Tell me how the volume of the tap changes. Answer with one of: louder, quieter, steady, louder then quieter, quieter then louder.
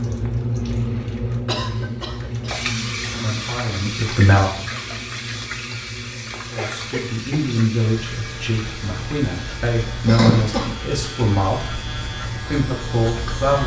quieter.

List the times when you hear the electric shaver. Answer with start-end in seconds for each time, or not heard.
7.8-13.6.